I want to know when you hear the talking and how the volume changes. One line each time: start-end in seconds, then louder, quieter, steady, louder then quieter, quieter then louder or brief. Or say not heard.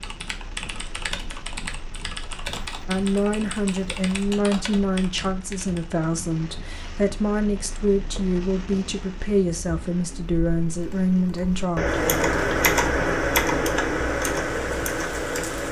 2.9-11.8 steady.